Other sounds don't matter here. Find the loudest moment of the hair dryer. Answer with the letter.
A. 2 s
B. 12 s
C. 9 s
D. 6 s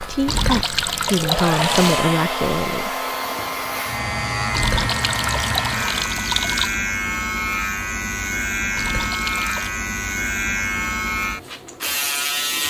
A.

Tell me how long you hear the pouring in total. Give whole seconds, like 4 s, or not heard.
5 s.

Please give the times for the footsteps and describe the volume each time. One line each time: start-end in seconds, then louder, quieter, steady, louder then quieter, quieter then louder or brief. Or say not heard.
not heard.